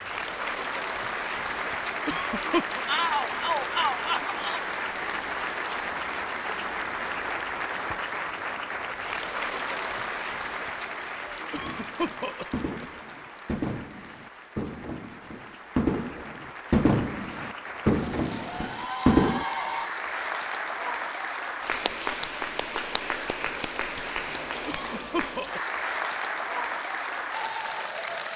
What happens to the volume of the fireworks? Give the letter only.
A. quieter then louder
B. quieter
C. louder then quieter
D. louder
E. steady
D.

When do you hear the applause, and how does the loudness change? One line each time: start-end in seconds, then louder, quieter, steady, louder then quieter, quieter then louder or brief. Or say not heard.
0.0-28.3 quieter then louder.